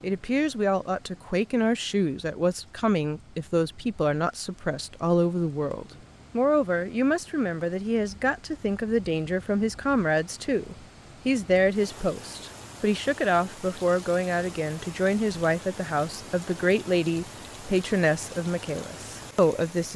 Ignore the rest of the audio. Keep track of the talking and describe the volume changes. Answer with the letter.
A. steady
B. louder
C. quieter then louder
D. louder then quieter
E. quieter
A.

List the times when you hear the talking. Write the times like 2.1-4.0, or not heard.
0.0-19.9.